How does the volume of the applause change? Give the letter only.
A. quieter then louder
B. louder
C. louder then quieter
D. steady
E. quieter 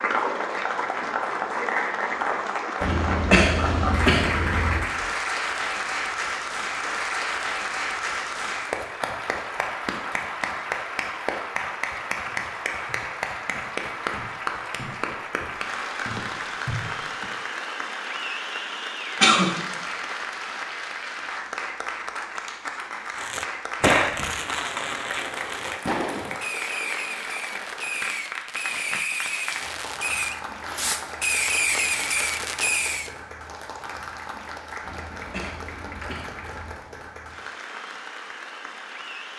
E.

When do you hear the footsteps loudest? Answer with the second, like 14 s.
17 s.